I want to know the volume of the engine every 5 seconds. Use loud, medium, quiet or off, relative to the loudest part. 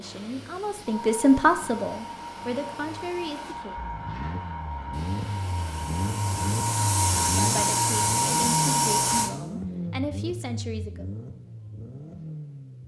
medium, loud, medium.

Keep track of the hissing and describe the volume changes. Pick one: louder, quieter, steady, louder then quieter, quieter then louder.
louder.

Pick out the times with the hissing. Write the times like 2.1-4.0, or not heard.
0.0-9.3.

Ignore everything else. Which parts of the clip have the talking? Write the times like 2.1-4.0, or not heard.
0.0-3.8, 7.3-11.1.